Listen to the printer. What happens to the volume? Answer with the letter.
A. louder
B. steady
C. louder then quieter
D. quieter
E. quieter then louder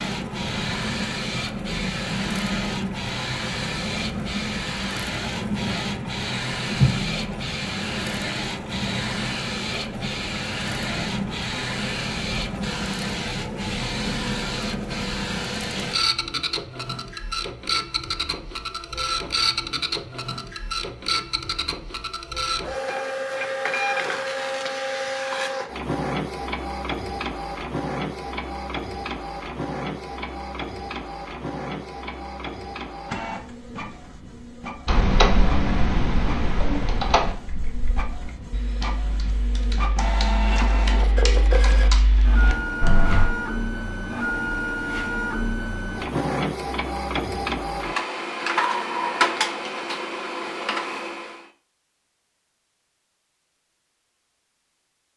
E.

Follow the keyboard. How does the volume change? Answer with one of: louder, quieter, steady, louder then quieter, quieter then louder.
quieter then louder.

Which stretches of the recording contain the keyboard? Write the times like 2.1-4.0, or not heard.
34.9-43.3.